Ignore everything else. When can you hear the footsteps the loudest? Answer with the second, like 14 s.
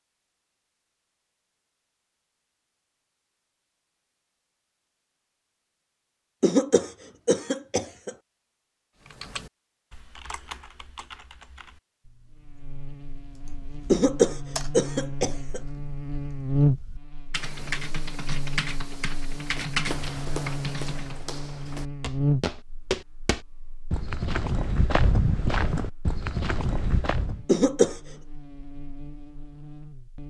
25 s.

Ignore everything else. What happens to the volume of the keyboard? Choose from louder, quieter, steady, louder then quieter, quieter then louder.
quieter then louder.